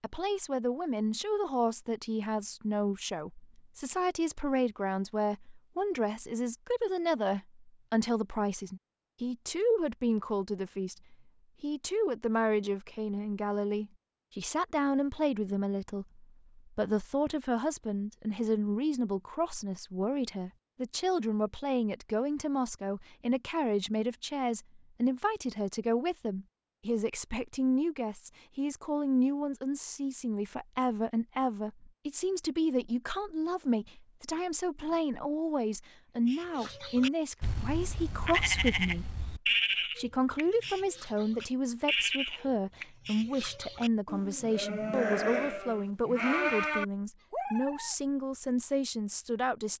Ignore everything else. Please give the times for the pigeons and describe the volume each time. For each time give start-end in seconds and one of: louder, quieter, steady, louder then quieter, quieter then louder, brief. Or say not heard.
not heard.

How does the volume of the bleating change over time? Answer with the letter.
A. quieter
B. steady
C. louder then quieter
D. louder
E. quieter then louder
B.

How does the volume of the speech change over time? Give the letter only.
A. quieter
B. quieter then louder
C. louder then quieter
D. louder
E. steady
E.